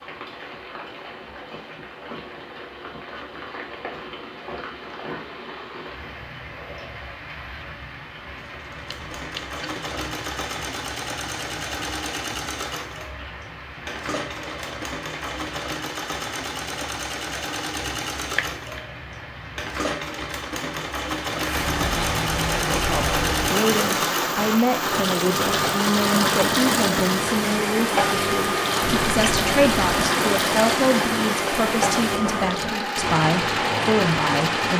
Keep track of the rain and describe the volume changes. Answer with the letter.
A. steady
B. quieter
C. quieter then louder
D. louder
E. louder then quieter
D.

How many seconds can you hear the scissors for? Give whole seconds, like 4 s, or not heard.
3 s.